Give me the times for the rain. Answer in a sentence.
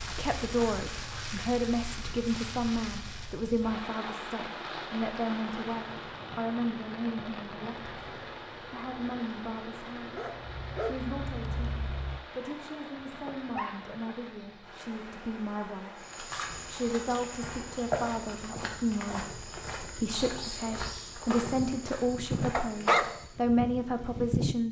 The rain can be heard from 0.0 to 18.0 s.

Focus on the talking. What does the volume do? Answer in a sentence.
The volume of the talking goes down, then up.